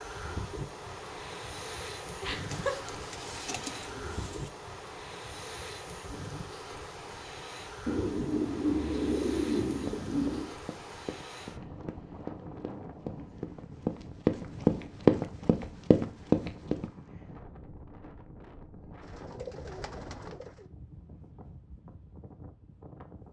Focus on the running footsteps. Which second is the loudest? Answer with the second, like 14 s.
15 s.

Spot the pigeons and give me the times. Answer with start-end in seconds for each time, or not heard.
2.5-4.5, 7.8-10.6, 19.0-20.6.